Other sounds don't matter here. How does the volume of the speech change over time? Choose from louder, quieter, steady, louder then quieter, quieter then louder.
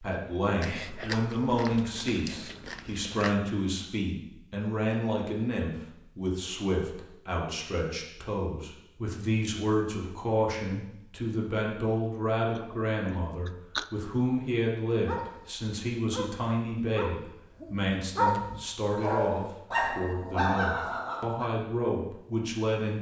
steady.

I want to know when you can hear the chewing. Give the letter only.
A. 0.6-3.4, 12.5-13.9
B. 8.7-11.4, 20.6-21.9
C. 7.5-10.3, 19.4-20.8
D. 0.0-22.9
A.